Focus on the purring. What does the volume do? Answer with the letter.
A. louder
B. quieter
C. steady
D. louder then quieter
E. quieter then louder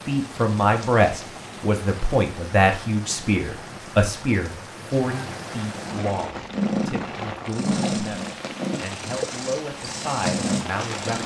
E.